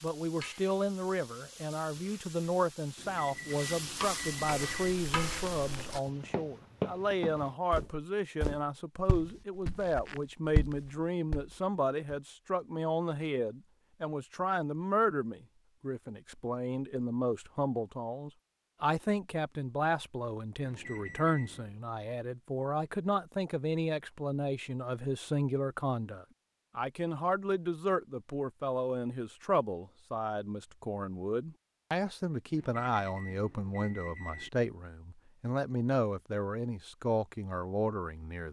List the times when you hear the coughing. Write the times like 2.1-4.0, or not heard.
not heard.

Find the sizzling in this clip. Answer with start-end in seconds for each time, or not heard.
0.0-6.0.